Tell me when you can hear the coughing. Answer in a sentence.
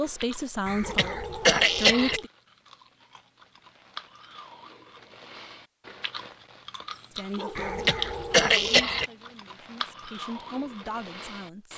You can hear the coughing from 0.7 to 2.2 s and from 7.5 to 9.1 s.